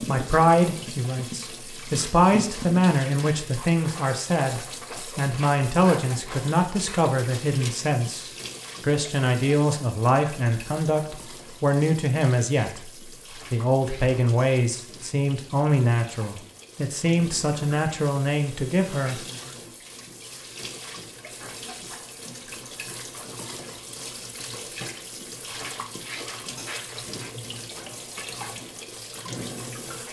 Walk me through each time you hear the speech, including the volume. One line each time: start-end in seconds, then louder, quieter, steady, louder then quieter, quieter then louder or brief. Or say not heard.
0.0-19.2 steady.